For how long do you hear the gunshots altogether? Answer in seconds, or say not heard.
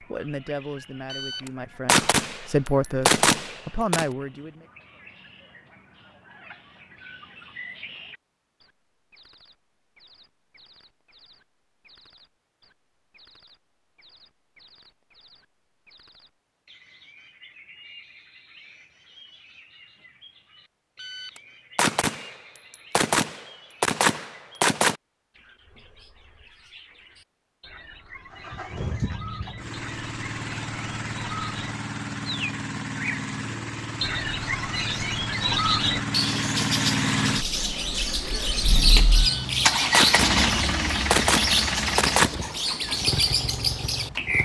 10 s.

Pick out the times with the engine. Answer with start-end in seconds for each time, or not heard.
28.3-44.4.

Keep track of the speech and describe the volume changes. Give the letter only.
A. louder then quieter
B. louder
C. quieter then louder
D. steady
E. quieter
B.